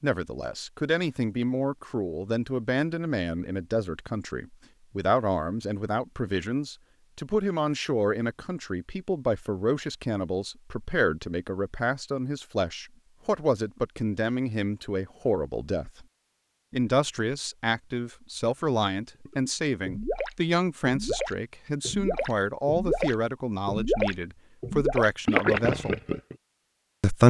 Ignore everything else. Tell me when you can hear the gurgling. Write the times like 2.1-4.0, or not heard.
19.2-26.4.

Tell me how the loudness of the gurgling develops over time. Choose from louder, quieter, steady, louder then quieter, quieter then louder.
louder.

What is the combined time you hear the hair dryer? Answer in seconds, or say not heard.
not heard.